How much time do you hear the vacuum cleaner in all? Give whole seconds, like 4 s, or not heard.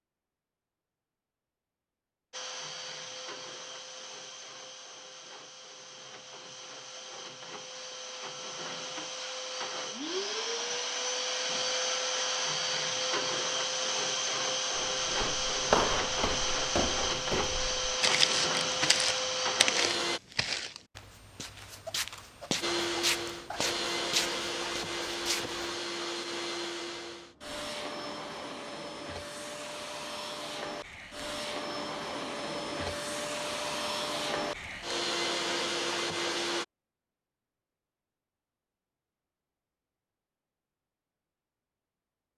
32 s.